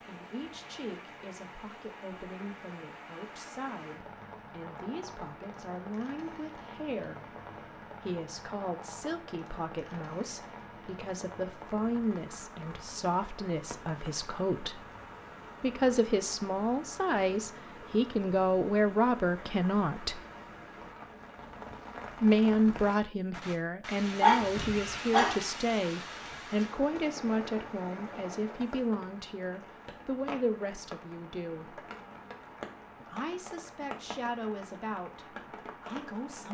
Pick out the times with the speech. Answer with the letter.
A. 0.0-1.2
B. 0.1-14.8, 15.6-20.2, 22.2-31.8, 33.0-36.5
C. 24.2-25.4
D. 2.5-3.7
B.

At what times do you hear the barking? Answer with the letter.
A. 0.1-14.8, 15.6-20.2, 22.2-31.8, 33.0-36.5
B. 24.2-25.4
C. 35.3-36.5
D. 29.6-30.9
B.